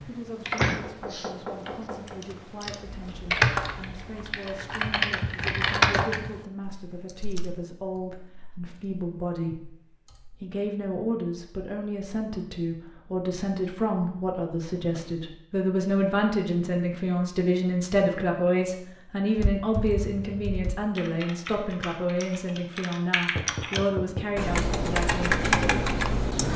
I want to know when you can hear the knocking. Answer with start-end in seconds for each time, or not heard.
0.8-2.2, 23.4-24.4.